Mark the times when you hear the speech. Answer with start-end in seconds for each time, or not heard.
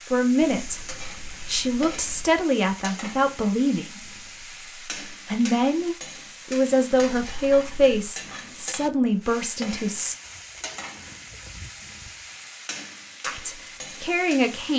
0.1-10.2, 13.2-14.7.